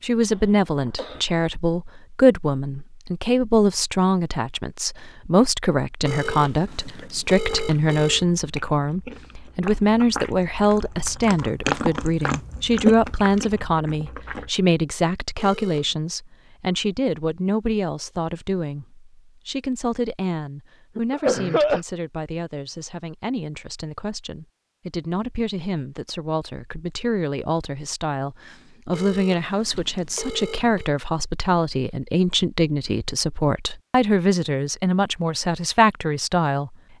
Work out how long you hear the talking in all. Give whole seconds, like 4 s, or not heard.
37 s.